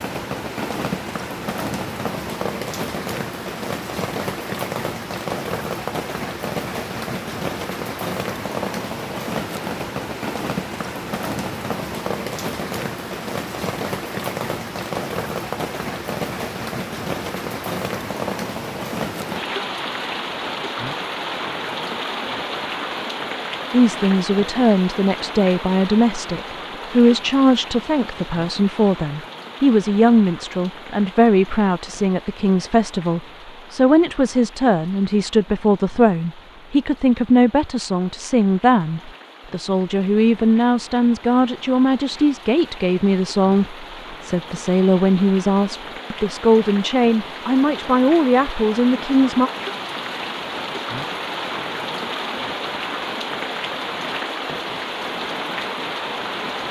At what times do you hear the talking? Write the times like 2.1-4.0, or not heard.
23.7-49.5.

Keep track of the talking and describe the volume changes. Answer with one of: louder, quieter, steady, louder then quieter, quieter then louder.
steady.